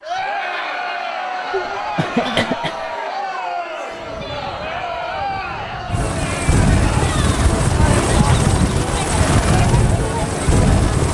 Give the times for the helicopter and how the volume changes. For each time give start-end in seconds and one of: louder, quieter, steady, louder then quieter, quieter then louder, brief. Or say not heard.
3.9-11.0 louder.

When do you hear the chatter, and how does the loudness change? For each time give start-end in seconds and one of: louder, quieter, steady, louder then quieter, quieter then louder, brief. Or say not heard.
0.0-11.0 steady.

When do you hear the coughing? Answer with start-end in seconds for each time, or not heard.
1.5-2.9.